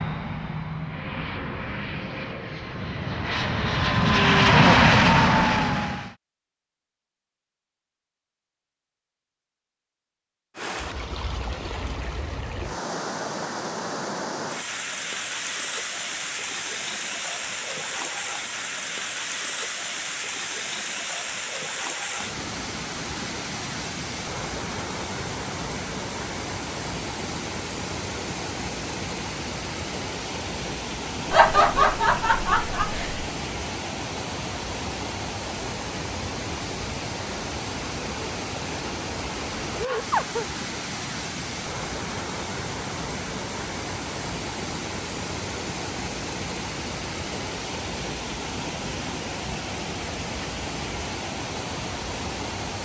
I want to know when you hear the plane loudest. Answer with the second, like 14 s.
5 s.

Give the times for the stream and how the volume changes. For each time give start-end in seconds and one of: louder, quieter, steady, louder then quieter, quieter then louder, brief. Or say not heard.
10.6-52.8 steady.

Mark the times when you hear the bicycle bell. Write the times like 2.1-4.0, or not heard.
not heard.